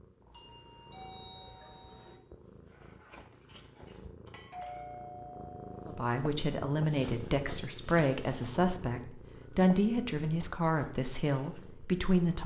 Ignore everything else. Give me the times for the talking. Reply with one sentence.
The talking can be heard from 5.8 to 12.4 s.